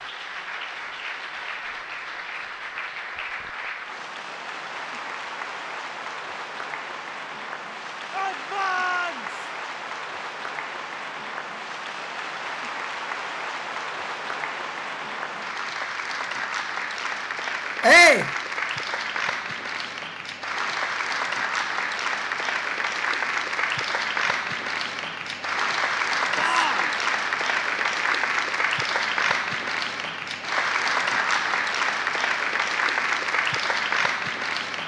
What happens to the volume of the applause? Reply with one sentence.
The volume of the applause goes up.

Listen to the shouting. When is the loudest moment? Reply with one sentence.
The loudest moment of the shouting is at 18 seconds.